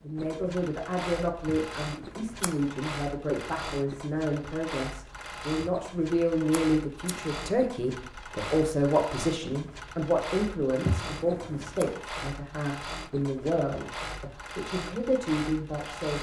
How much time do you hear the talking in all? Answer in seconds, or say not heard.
16 s.